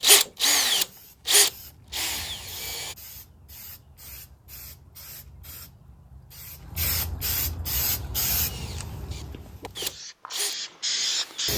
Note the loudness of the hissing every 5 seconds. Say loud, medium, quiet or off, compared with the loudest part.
quiet, medium, loud.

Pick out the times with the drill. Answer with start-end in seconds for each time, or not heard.
0.0-3.0, 7.9-11.5.